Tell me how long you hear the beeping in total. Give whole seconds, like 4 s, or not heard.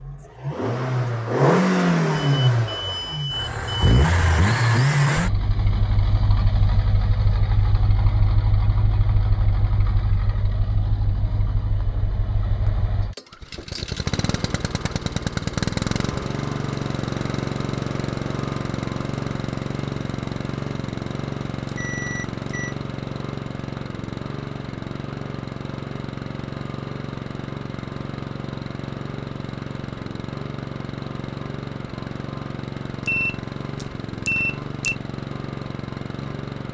5 s.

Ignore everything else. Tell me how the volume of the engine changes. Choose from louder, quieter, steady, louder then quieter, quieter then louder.
quieter.